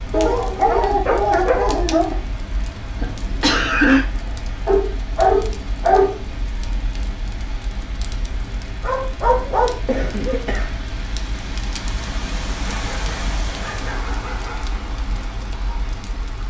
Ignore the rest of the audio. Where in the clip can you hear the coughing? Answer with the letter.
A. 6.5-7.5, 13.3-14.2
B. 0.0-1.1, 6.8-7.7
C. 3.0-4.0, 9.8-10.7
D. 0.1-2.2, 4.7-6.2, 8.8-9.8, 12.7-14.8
C.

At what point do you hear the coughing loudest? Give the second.
4 s.